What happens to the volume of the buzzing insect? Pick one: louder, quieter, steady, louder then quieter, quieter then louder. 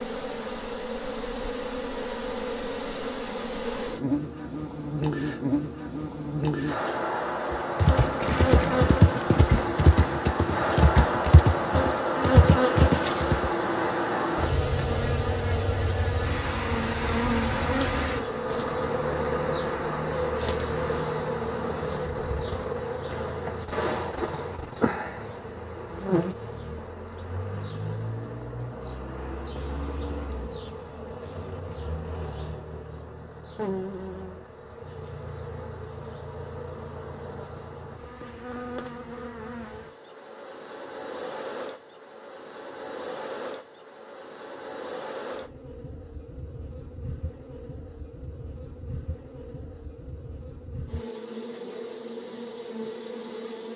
quieter.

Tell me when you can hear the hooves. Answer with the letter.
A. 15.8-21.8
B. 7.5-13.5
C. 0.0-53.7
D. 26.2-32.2
B.